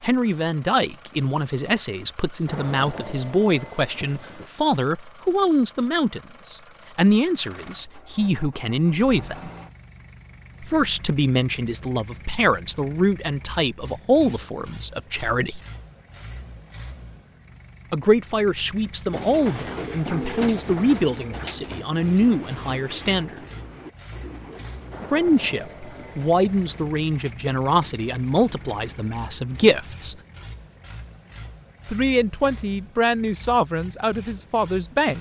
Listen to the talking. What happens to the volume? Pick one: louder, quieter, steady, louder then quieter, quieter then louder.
steady.